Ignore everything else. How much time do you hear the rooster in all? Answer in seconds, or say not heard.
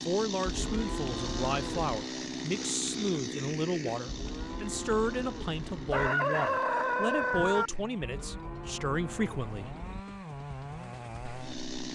2 s.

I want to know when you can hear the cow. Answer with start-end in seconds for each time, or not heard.
0.5-1.9, 4.0-6.1, 8.0-10.0.